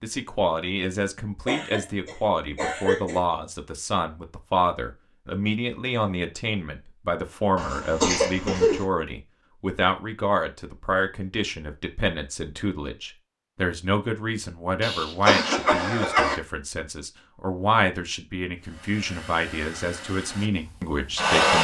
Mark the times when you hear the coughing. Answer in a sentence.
The coughing can be heard from 1.4 to 3.2 s, from 7.5 to 8.8 s and from 14.8 to 16.4 s.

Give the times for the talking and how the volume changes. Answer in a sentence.
You can hear the talking from 0.0 to 21.5 s, at a steady volume.